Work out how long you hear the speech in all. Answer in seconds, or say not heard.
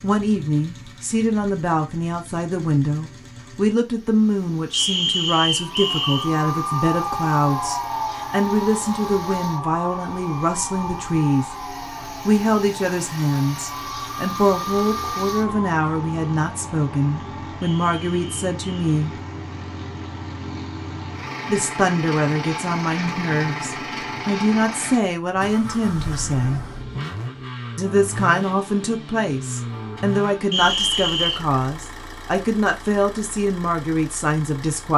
31 s.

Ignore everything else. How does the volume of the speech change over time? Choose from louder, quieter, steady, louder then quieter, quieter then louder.
steady.